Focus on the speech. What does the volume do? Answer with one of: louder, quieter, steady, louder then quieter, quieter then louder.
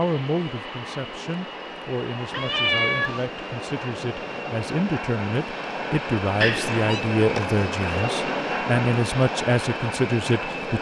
louder.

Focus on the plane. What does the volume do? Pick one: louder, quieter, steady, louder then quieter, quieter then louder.
louder.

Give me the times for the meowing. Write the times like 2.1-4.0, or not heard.
2.3-3.3, 6.4-7.0.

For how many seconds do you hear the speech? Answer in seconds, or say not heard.
11 s.